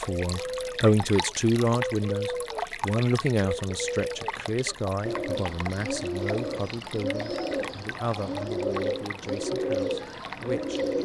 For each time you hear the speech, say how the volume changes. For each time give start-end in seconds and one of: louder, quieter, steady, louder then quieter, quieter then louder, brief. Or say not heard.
0.0-10.8 quieter.